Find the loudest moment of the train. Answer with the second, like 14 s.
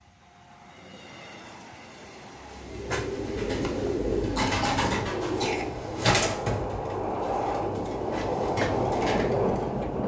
9 s.